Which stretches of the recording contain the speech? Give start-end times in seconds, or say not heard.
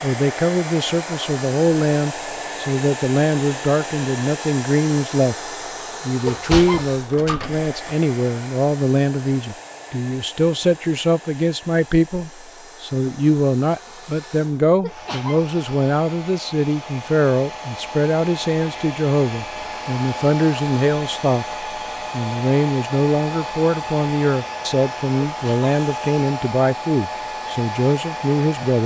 0.0-5.3, 6.0-28.8.